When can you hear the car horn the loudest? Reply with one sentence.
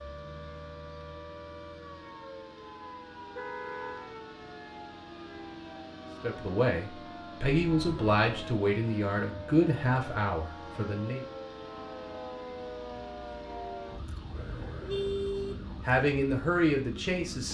The loudest moment of the car horn is at 15 seconds.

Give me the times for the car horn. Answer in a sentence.
You can hear the car horn from 3.4 to 4.1 s, from 7.8 to 8.6 s and from 14.3 to 15.7 s.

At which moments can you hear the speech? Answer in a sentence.
You can hear the speech from 6.2 to 11.2 s and from 15.8 to 17.4 s.